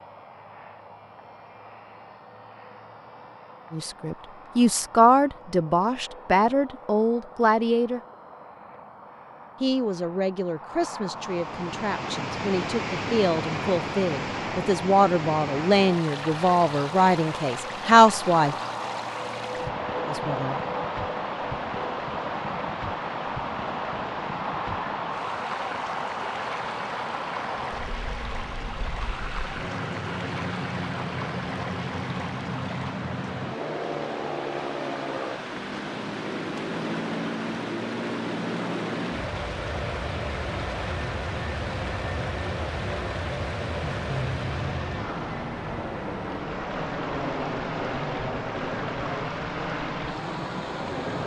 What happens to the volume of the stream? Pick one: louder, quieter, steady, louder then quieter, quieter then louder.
steady.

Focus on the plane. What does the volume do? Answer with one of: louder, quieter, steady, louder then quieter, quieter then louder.
louder.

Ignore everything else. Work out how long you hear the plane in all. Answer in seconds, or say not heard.
51 s.